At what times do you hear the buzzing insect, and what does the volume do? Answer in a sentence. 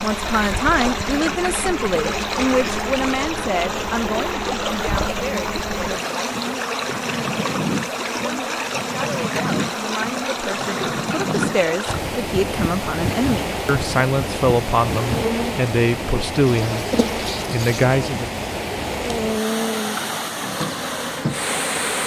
The buzzing insect can be heard from 0.0 to 22.0 s, at a steady volume.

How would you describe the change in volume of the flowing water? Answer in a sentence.
The loudness of the flowing water stays about the same.